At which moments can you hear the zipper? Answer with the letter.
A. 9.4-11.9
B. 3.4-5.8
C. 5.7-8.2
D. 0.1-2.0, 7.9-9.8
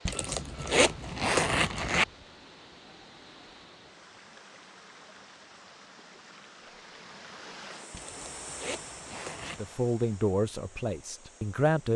D.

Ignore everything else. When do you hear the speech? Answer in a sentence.
You can hear the speech from 9.4 to 11.9 s.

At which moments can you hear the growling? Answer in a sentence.
You can't hear the growling here.